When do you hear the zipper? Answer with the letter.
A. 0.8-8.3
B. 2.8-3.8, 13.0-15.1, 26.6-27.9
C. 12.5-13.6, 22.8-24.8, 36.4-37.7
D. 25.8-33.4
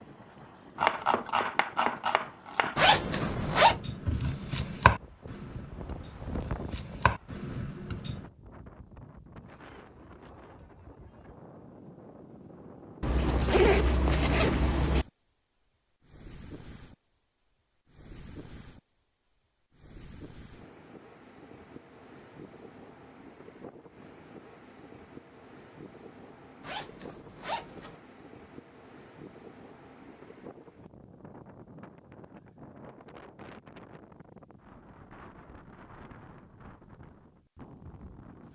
B.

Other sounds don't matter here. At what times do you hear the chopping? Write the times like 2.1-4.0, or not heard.
0.8-8.3.